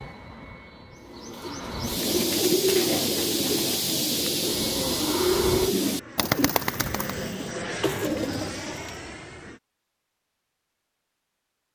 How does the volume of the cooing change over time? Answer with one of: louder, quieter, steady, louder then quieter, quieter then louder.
quieter.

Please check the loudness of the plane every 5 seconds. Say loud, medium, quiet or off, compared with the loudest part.
medium, loud, off.